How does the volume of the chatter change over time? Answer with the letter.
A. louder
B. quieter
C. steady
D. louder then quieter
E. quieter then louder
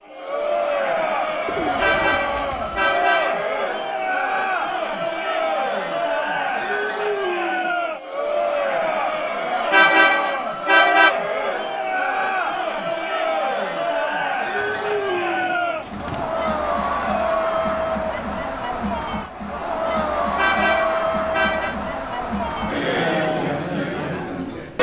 C.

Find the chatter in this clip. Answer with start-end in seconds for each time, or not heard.
0.1-24.7.